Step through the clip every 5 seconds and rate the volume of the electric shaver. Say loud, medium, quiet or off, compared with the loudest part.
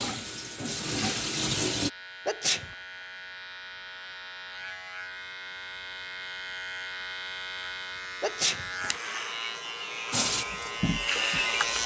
quiet, medium, loud.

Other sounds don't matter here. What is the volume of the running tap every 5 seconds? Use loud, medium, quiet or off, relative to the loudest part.
loud, off, loud.